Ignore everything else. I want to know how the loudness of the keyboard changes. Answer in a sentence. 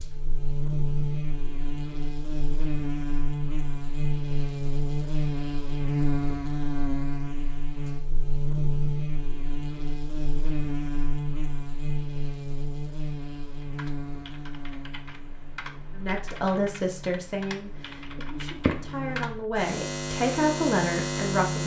The loudness of the keyboard goes up.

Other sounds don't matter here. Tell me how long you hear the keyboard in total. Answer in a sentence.
You can hear the keyboard for 6 seconds altogether.